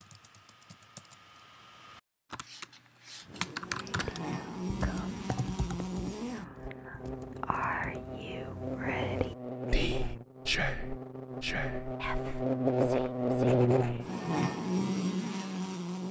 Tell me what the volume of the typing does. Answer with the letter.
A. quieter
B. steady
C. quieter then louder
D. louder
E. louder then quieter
E.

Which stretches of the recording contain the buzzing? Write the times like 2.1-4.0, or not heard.
3.2-16.0.